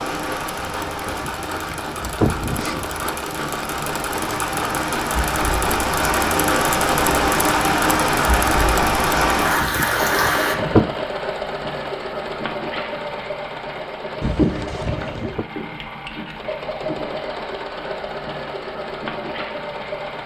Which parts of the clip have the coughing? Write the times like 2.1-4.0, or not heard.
not heard.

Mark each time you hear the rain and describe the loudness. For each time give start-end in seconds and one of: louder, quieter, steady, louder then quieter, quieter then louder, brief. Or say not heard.
0.0-10.6 louder.